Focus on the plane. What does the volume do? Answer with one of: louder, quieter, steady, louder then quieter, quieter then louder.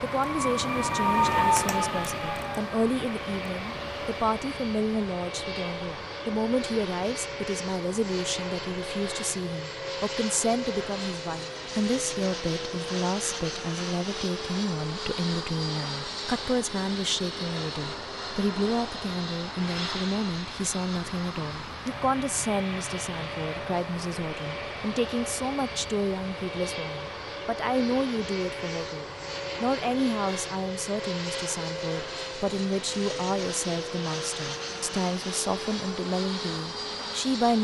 steady.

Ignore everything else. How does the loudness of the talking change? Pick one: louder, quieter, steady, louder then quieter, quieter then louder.
steady.